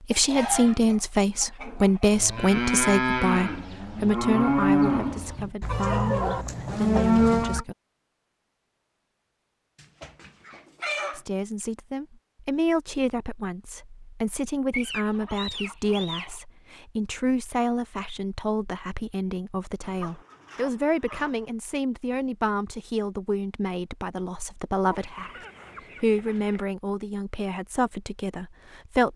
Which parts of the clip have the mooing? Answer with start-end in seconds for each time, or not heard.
1.6-7.7.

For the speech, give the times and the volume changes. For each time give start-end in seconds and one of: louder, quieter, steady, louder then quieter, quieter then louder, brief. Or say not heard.
0.0-7.8 quieter
11.1-29.1 steady.